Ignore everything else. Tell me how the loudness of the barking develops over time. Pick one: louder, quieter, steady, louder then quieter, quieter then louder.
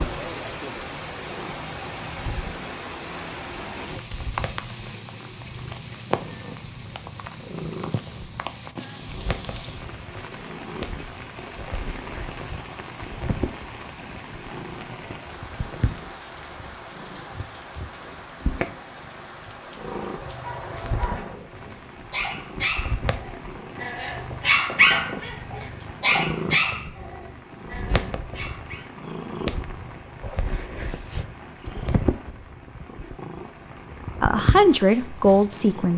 louder then quieter.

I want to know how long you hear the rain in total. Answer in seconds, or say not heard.
36 s.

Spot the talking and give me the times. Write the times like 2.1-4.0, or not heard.
34.2-35.9.